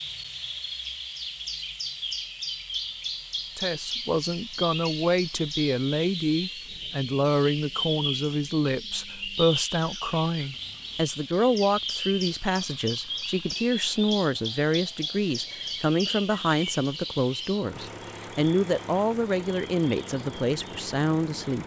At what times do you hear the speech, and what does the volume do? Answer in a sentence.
The speech can be heard from 3.5 to 21.6 s, at a steady volume.